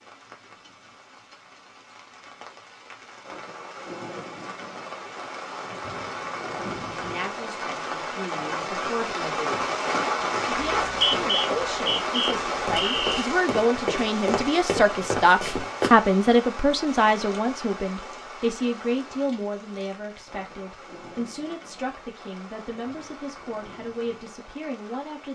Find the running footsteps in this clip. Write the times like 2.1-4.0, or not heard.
9.4-15.9.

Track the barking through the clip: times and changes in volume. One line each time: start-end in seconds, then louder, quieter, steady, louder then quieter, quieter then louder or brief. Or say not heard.
not heard.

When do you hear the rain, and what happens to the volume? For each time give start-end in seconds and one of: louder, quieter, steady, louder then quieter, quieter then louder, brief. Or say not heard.
0.0-25.3 louder then quieter.